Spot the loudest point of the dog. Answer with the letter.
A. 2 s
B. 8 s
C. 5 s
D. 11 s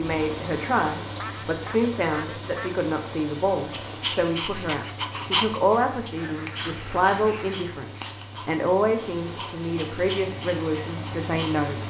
C.